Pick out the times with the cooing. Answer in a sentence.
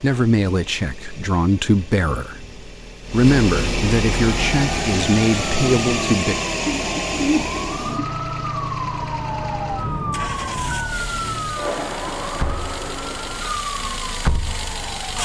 You can hear the cooing from 6.7 to 8.2 s.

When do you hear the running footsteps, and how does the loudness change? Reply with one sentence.
The running footsteps can't be heard in this clip.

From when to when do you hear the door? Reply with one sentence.
The door can't be heard in this clip.